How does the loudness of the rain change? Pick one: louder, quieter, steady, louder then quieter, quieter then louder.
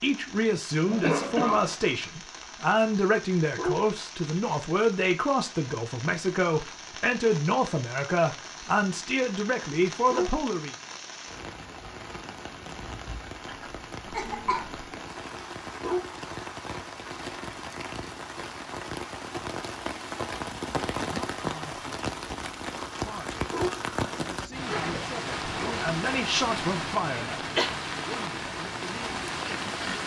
louder.